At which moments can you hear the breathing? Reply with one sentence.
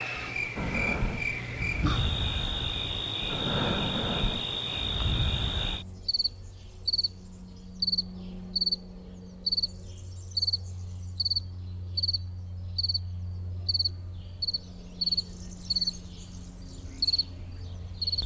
You can hear the breathing from 0.6 to 5.8 s.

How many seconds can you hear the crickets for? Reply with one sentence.
The crickets can be heard for 18 seconds in total.